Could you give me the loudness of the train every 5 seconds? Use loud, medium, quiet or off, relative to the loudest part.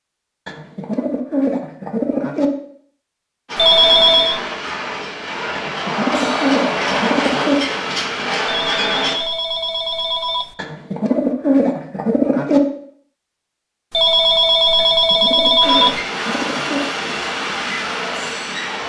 medium, loud, off, loud.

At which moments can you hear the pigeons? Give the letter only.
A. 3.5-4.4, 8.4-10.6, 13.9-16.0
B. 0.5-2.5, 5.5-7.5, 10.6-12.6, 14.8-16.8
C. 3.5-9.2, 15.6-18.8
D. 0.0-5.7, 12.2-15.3
B.